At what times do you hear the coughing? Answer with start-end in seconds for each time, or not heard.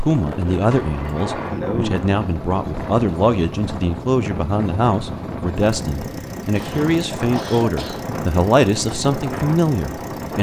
1.1-2.0, 6.4-8.2.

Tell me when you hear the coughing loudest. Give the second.
2 s.